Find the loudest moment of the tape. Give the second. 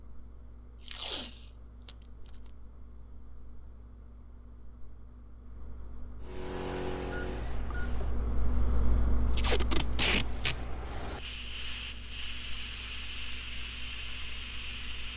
10 s.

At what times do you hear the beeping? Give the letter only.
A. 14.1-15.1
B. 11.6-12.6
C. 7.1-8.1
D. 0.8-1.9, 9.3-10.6
C.